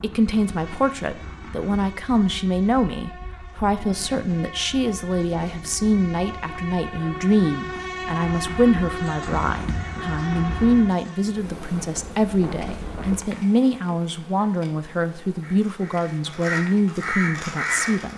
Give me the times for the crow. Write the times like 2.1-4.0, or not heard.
9.2-10.8, 15.4-18.1.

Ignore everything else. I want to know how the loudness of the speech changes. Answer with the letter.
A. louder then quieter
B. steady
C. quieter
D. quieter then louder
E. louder
B.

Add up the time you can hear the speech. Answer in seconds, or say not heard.
18 s.